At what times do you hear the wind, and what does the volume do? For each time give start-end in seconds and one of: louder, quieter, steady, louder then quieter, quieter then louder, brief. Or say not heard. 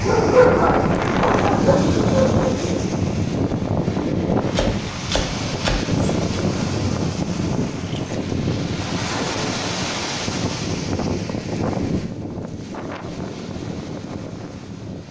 0.0-15.0 quieter.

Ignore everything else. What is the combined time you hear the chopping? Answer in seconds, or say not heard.
2 s.